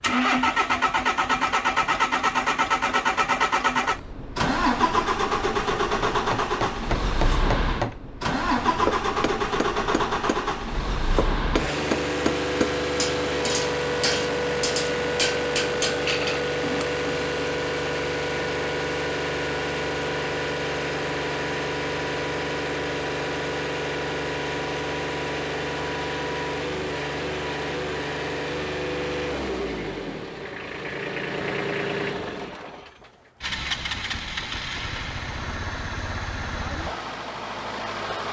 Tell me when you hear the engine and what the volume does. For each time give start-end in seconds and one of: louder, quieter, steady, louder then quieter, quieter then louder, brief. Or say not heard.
0.0-38.2 quieter.